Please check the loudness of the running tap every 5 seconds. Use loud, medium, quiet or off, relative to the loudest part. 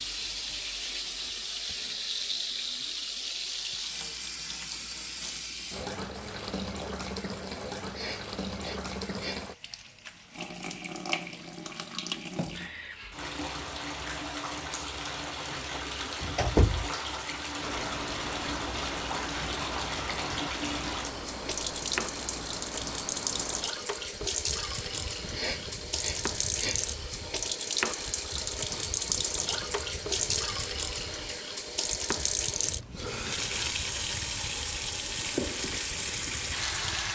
loud, medium, medium, loud, loud, loud, loud, loud.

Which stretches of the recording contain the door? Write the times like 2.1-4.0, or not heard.
15.6-16.9.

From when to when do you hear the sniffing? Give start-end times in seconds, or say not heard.
7.9-9.4, 25.3-26.8.